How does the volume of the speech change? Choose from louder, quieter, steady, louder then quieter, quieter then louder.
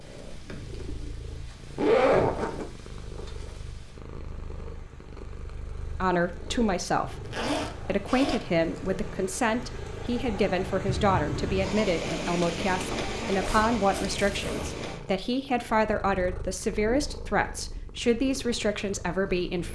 steady.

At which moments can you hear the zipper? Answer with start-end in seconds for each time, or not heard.
1.8-2.6, 7.2-8.9, 13.4-14.8.